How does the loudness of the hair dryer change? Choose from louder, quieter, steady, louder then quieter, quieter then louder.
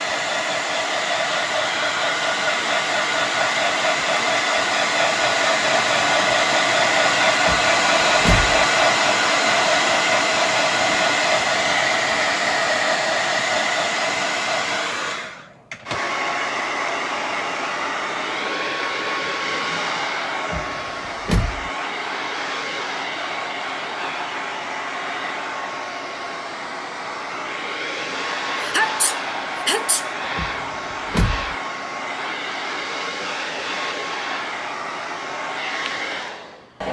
quieter.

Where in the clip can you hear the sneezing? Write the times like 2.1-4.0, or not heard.
28.6-30.1.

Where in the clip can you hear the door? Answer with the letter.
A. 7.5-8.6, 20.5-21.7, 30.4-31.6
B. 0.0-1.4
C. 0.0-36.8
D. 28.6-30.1
A.